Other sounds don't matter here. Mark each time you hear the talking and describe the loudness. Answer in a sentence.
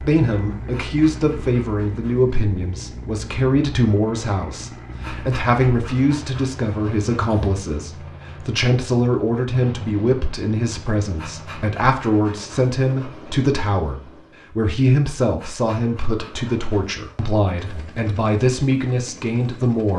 You can hear the talking from 0.0 to 19.9 s, at a steady volume.